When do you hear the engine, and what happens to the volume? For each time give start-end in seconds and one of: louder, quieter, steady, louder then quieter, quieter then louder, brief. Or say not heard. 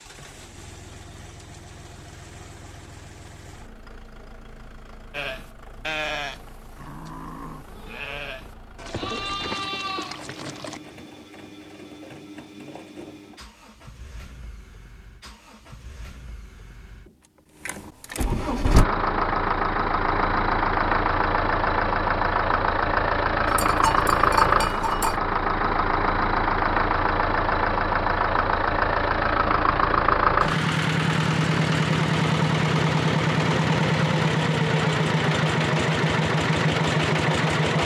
0.0-37.8 louder.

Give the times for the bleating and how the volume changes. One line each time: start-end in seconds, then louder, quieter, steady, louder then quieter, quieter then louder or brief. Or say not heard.
5.1-10.8 quieter then louder
23.4-25.2 brief.